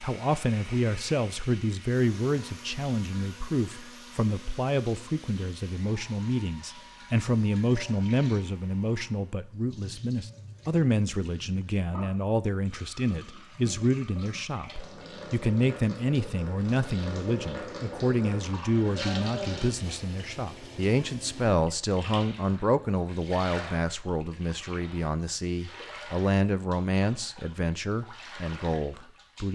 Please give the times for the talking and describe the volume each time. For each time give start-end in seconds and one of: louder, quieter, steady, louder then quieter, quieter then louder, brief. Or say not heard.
0.0-29.4 steady.